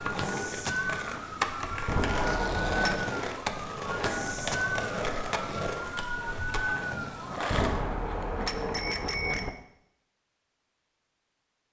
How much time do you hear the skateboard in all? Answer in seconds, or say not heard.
8 s.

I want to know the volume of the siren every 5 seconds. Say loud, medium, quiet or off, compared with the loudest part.
loud, loud, off.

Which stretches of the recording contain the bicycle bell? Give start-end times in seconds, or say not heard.
1.9-3.0, 7.5-9.5.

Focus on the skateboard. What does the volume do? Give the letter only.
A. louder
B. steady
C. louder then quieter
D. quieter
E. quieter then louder
D.